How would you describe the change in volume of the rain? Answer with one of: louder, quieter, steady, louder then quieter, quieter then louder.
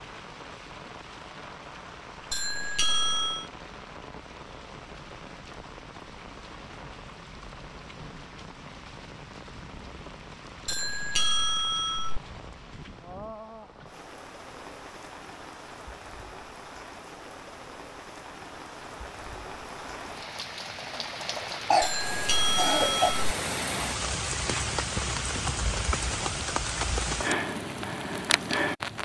louder.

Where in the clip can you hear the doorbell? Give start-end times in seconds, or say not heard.
2.3-3.5, 10.7-12.2, 21.8-23.2.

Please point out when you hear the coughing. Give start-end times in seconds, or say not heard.
21.7-23.1.